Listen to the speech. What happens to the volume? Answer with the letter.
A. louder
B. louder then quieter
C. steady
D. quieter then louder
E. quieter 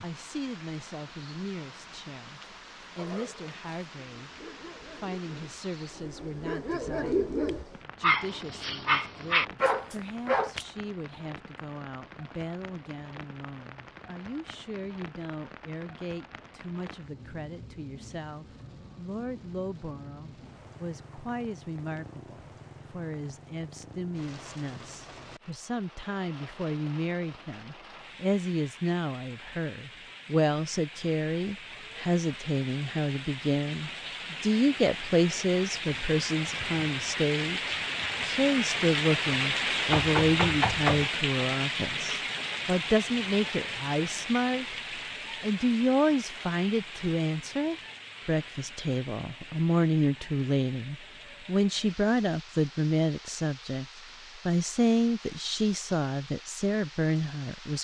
A.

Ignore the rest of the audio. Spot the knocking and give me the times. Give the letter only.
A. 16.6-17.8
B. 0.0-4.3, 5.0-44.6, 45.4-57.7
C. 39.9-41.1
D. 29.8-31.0
C.